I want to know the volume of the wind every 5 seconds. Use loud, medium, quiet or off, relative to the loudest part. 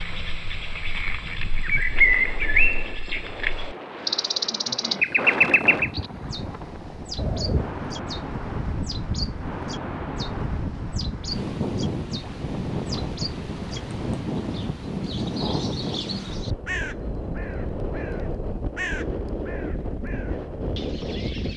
medium, loud, loud, loud, loud.